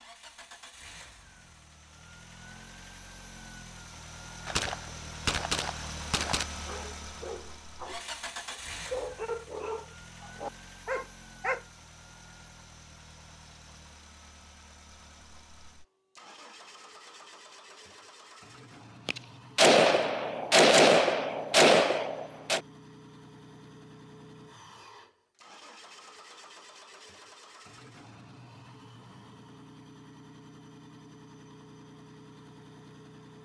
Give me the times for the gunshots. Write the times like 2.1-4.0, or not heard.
4.5-6.5, 19.1-22.6.